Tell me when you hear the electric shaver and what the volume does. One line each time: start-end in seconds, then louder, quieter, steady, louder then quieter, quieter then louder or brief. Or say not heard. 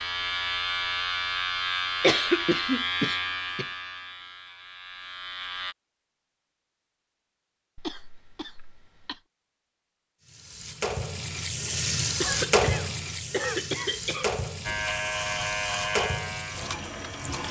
0.0-5.8 quieter
14.7-17.4 brief.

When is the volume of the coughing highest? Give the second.
2 s.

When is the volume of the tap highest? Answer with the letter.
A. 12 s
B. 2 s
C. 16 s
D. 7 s
A.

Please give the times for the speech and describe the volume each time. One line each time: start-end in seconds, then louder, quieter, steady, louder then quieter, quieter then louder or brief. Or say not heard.
not heard.